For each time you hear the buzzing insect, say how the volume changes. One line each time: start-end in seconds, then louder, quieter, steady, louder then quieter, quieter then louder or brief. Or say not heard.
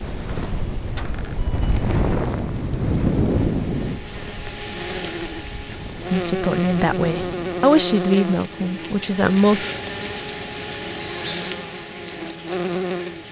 0.0-13.2 louder.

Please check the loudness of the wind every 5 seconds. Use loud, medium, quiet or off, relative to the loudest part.
loud, quiet, off.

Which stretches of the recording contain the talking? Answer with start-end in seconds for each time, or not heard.
6.1-9.7.